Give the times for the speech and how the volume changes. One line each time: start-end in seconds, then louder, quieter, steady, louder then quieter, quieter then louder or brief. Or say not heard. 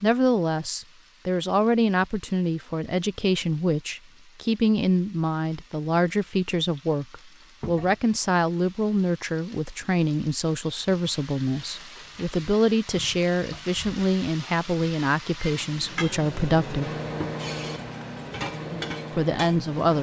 0.0-16.9 steady
19.1-19.9 brief.